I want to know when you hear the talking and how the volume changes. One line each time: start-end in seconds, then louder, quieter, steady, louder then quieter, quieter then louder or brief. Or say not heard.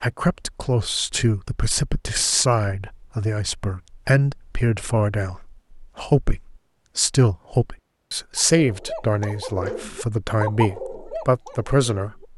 0.0-12.2 steady.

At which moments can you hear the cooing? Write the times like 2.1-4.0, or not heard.
8.3-12.2.